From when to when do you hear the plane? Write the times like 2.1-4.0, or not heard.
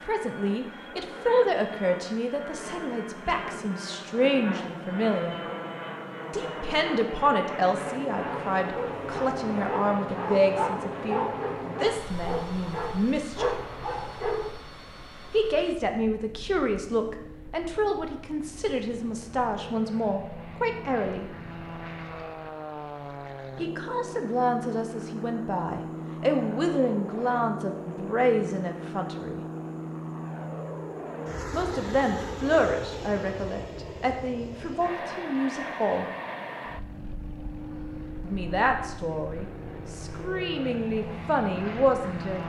0.0-42.4.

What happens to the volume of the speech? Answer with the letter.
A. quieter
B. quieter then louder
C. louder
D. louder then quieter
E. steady
E.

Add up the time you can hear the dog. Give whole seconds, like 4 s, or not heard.
6 s.